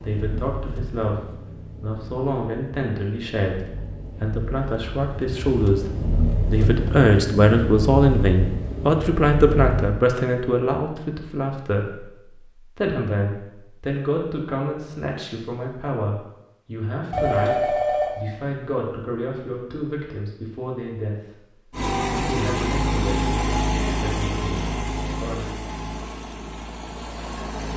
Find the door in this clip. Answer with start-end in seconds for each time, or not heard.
not heard.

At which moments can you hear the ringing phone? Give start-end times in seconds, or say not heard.
17.1-18.1.